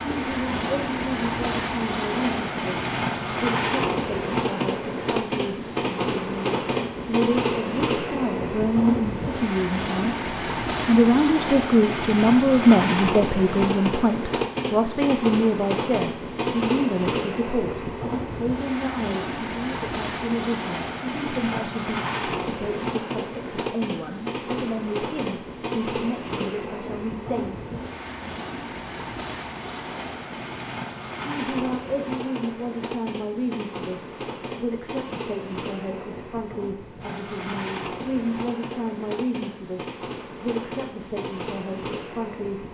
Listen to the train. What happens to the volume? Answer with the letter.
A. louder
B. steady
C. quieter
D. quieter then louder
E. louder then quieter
C.